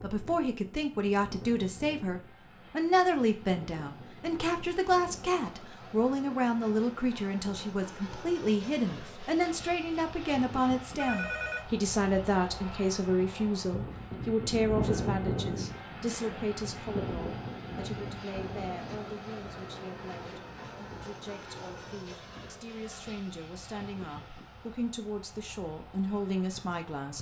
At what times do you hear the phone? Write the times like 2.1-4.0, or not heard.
10.9-11.7.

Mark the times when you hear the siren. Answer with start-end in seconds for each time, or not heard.
not heard.